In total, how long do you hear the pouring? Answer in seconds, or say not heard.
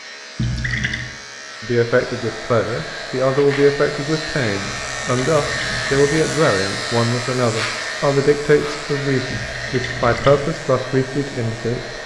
3 s.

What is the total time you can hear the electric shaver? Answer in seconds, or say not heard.
12 s.